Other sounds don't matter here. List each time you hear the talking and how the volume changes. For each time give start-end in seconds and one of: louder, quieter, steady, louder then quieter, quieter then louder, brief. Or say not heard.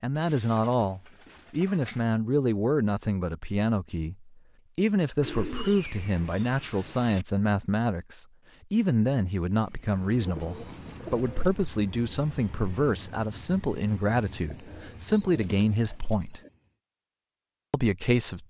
0.0-16.4 steady
17.7-18.4 brief.